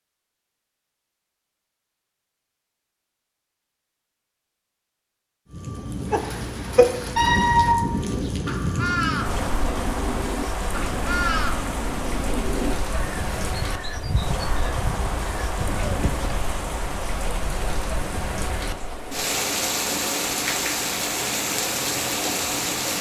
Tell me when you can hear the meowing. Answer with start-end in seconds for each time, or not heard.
7.2-8.1.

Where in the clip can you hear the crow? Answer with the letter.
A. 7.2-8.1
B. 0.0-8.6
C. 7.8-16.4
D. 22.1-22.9
C.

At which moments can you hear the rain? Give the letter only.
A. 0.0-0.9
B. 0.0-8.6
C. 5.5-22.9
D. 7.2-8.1
C.